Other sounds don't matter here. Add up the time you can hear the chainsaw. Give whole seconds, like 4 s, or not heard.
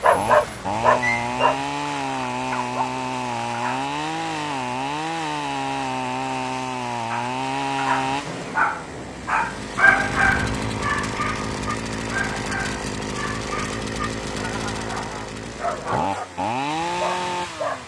18 s.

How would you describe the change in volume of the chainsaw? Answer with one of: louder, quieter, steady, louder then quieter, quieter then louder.
steady.